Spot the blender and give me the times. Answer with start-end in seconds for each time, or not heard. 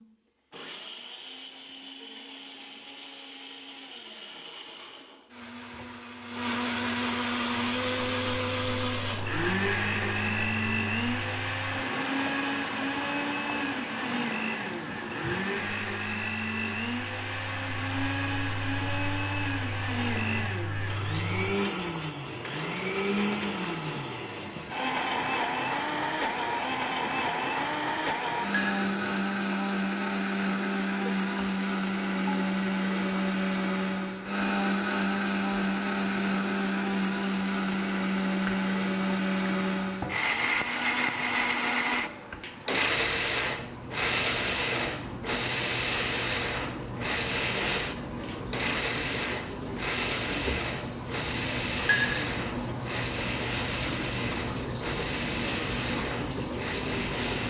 0.0-57.4.